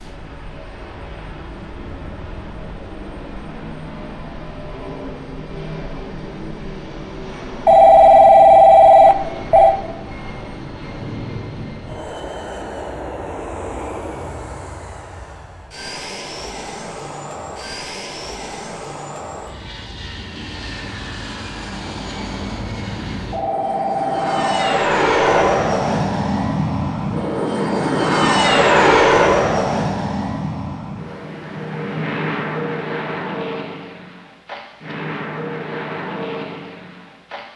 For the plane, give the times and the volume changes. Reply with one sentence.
You can hear the plane from 0.0 to 37.5 s, getting louder then quieter.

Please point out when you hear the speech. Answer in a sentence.
The speech can't be heard in this clip.